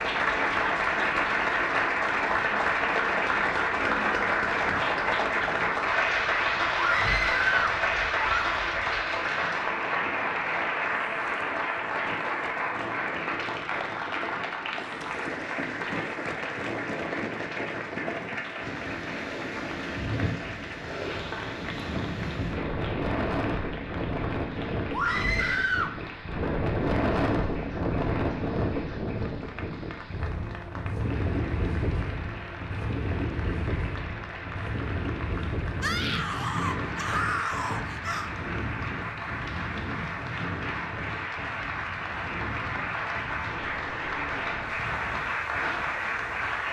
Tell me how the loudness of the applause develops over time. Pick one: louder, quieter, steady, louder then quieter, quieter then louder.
quieter then louder.